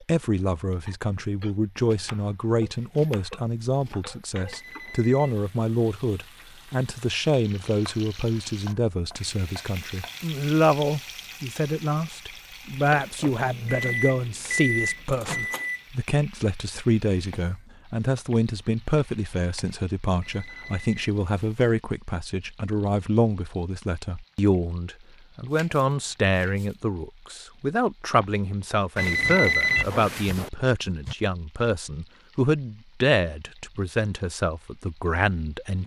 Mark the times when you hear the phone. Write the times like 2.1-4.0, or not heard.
4.5-5.3, 20.2-21.6, 28.9-30.5.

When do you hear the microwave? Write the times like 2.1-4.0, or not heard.
12.8-15.8.